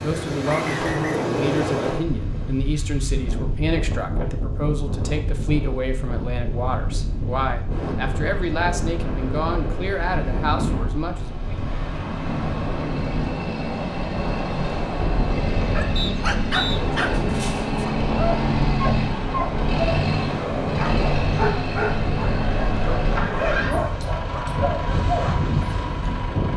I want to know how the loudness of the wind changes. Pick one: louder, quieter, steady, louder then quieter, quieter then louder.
steady.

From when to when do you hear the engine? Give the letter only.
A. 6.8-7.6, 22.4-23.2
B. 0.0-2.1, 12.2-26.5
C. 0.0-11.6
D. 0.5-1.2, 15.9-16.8
B.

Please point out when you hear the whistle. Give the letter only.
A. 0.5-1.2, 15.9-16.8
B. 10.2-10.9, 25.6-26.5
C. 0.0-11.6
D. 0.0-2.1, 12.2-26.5
A.